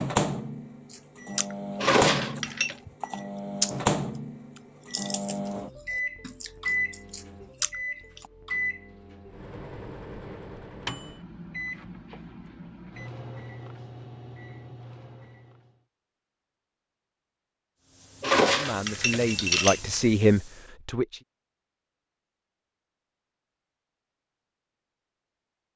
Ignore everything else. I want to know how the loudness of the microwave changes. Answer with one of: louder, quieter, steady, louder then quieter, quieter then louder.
quieter.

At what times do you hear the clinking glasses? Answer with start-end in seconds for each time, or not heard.
1.8-2.8, 18.2-19.8.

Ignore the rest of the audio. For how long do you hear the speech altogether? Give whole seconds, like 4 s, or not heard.
3 s.